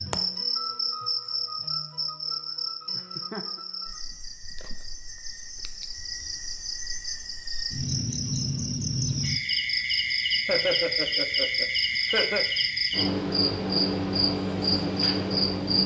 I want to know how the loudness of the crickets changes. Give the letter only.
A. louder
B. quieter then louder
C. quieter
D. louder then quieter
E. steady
B.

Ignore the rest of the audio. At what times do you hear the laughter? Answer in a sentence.
The laughter can be heard from 3.0 to 3.6 s and from 10.4 to 12.4 s.